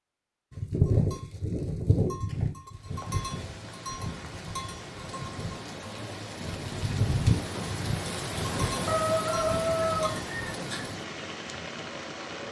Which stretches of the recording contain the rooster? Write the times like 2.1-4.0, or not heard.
8.8-10.9.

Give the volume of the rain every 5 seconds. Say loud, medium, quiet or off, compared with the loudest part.
medium, loud, loud.